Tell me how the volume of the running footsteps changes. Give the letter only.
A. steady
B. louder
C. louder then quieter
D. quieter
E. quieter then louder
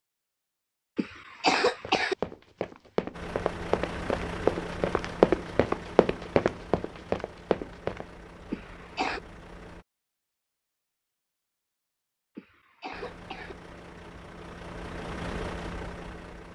C.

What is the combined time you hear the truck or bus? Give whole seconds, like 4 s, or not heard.
10 s.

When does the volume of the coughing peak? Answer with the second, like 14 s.
2 s.